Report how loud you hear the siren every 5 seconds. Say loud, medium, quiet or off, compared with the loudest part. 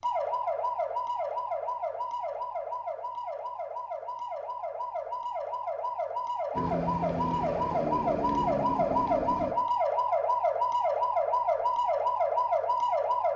medium, loud, loud.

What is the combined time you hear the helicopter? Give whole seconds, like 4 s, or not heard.
3 s.